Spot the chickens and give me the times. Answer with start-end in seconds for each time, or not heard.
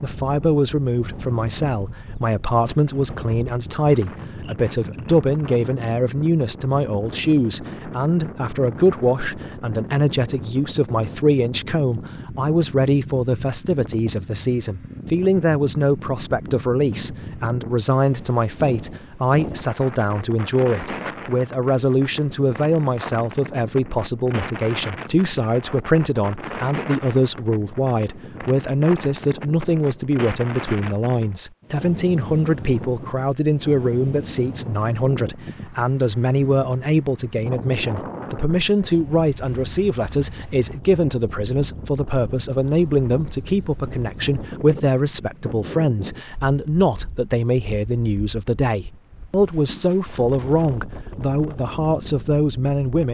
not heard.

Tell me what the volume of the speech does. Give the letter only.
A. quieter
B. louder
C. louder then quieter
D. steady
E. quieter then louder
D.